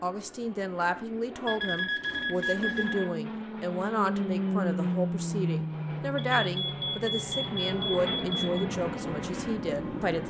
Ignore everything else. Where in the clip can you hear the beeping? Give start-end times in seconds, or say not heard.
1.4-3.0, 6.3-8.7.